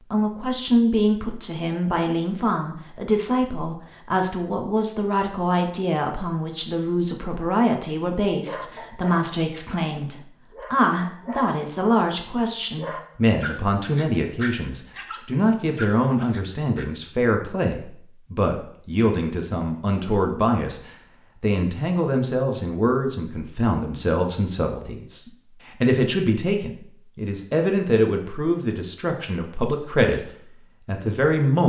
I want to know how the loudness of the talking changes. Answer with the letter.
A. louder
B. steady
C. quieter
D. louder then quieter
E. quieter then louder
B.